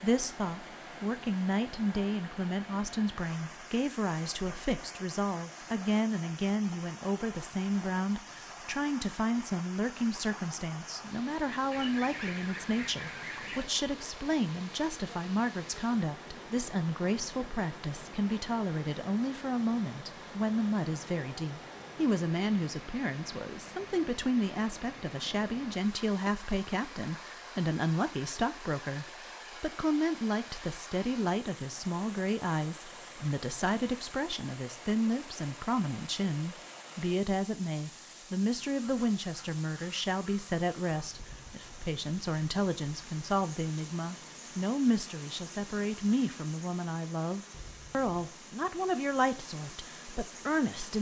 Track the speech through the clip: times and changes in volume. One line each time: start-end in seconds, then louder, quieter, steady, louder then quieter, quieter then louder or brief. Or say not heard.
0.0-50.9 steady.